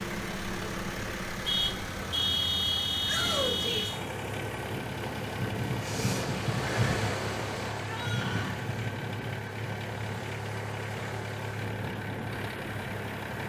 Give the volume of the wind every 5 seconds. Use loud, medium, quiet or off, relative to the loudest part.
medium, loud, medium.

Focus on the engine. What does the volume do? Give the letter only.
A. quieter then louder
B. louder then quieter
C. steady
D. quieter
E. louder
C.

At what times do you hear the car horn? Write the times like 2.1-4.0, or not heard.
1.4-4.0.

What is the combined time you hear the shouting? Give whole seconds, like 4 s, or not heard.
2 s.